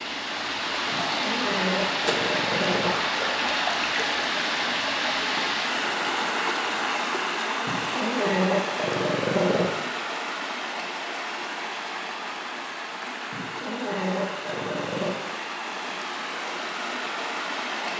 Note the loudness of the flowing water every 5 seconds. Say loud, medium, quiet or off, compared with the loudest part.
loud, loud, medium, medium.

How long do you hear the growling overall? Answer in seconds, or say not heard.
6 s.